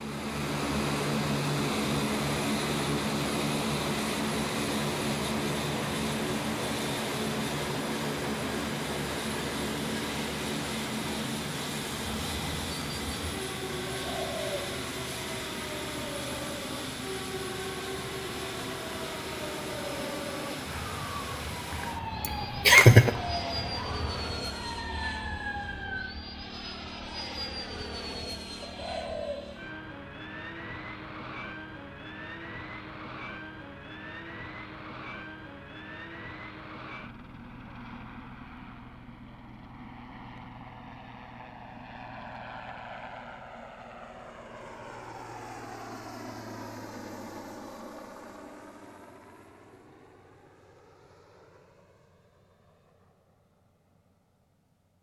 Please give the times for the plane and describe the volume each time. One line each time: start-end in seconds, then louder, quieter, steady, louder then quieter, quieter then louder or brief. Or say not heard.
0.0-54.9 quieter.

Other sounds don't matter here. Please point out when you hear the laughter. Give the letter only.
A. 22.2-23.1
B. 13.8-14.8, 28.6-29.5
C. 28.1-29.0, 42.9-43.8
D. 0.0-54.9
A.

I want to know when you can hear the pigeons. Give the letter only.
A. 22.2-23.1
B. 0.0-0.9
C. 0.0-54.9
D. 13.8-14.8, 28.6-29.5
D.